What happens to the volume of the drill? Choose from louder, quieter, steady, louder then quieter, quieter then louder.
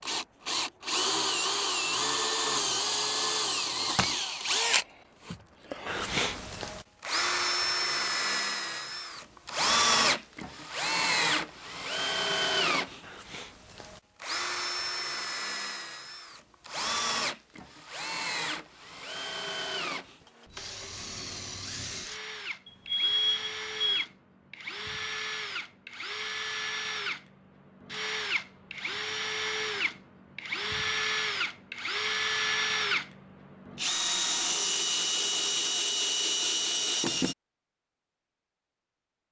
quieter then louder.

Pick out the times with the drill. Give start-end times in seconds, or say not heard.
0.0-37.4.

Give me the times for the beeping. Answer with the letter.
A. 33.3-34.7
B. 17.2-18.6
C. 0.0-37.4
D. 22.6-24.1
D.